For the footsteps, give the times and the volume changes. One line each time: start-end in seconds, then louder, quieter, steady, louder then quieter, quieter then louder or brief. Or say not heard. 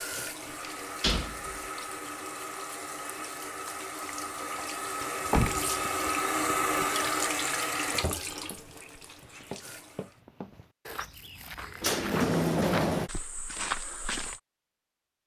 8.3-14.4 louder.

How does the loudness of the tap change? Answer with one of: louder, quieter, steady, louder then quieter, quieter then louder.
louder then quieter.